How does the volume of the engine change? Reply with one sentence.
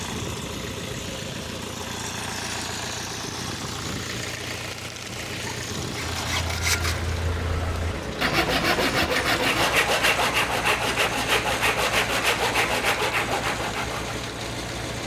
The volume of the engine stays about the same.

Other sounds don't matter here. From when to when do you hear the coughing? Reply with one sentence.
The coughing can't be heard in this clip.